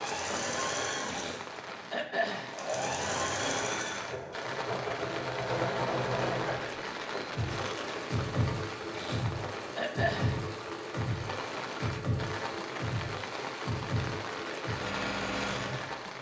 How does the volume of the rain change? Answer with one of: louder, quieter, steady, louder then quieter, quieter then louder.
steady.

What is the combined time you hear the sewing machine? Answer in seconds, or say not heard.
16 s.